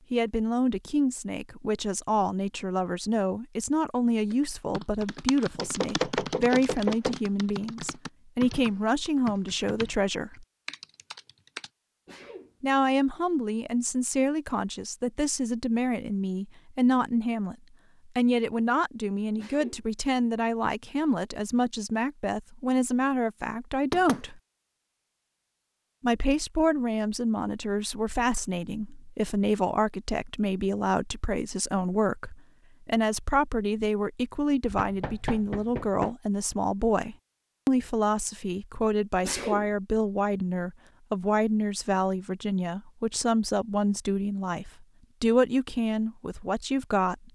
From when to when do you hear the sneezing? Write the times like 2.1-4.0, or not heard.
12.1-12.6, 19.4-19.9, 39.2-39.7.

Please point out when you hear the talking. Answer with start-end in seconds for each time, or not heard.
0.1-10.4, 12.6-24.4, 26.0-47.3.